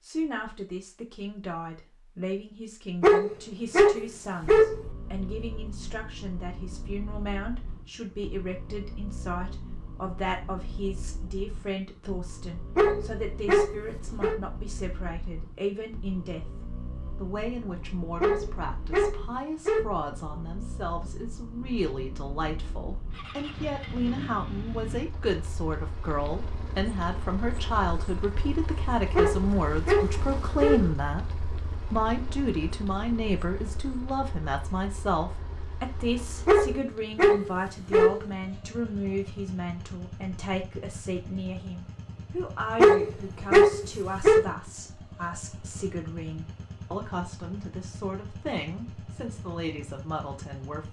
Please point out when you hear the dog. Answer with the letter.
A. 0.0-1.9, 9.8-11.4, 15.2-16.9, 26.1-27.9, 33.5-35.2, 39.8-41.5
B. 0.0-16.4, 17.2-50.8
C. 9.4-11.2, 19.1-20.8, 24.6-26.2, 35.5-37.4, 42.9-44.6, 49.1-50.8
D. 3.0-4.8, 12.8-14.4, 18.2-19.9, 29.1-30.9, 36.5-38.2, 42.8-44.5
D.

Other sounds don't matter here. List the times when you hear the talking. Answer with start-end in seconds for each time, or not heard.
0.0-16.4, 17.2-50.8.